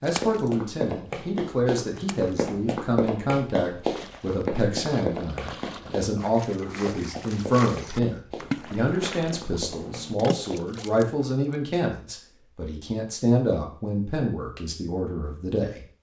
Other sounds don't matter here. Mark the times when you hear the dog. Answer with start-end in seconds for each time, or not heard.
not heard.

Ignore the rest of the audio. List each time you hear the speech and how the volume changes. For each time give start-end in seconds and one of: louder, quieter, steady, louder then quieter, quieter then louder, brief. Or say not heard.
0.0-15.8 steady.